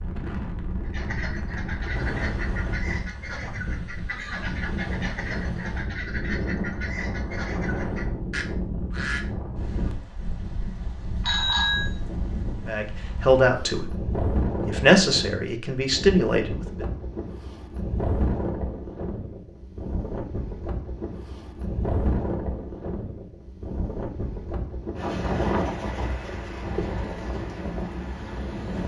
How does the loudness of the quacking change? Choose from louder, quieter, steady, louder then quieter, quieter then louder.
steady.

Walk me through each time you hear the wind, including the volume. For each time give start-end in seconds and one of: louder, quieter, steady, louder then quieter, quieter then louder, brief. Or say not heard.
0.0-28.8 steady.